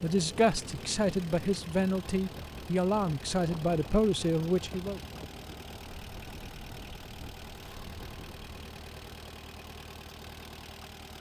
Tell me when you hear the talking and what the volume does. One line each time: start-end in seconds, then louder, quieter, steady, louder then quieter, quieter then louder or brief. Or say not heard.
0.0-5.0 steady.